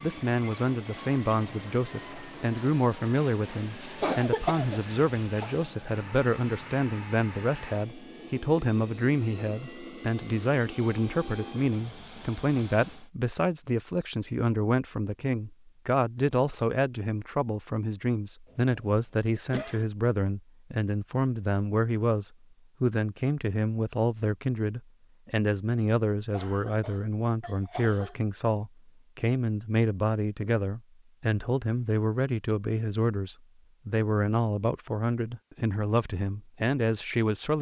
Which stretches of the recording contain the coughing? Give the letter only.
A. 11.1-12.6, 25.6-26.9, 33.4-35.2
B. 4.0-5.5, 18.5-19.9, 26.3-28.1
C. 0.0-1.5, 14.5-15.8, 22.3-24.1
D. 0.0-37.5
B.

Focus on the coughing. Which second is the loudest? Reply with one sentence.
The volume of the coughing peaks at 4 seconds.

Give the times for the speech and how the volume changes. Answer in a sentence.
The speech can be heard from 0.0 to 37.5 s, at a steady volume.